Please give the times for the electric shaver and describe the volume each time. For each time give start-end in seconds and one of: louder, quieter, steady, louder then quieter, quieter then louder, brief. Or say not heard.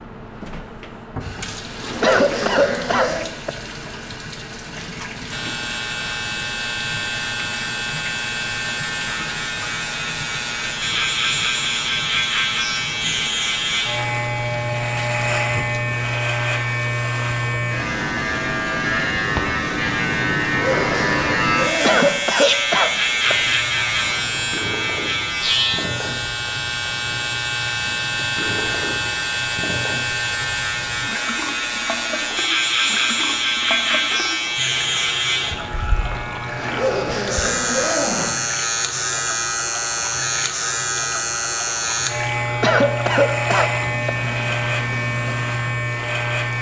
5.3-46.5 steady.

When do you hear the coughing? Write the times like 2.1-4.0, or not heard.
2.0-3.5, 21.8-23.4, 42.6-44.1.